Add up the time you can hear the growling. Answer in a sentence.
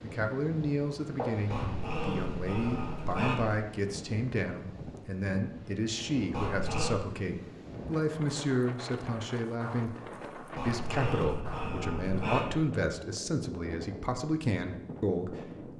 The growling can be heard for 5 seconds in total.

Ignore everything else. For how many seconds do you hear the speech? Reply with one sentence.
The speech can be heard for 16 seconds in total.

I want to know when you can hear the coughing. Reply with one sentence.
The coughing can be heard from 1.1 to 1.8 s.